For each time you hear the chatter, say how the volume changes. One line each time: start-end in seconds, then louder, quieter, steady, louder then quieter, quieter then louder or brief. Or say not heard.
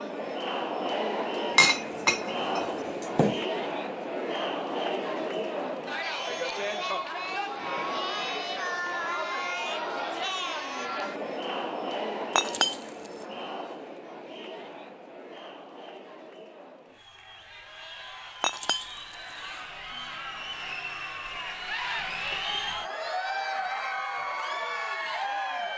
0.0-25.7 quieter then louder.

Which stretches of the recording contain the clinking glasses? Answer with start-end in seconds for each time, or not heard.
1.6-3.4, 12.3-12.8, 18.4-18.9.